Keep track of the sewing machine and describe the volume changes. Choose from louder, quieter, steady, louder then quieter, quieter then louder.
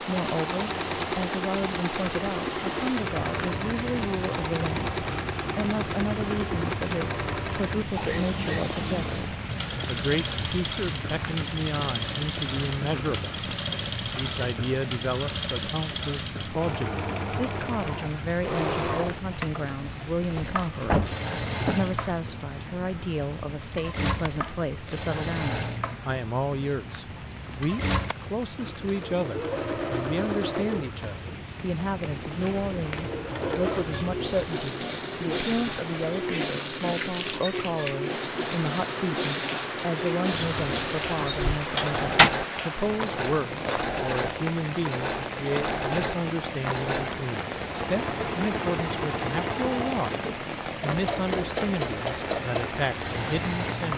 steady.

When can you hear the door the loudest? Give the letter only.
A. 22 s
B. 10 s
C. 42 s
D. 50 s
C.